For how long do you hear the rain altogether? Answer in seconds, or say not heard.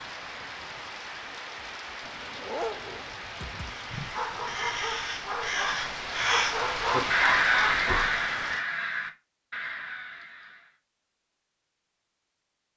9 s.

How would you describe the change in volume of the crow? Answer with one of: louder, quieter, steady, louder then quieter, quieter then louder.
louder then quieter.